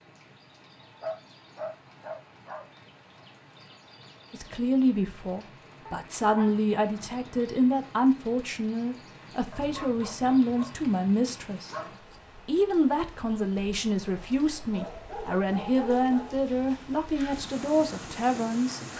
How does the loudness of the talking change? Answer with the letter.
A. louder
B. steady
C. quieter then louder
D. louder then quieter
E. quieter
B.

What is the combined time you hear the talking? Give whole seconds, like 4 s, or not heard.
14 s.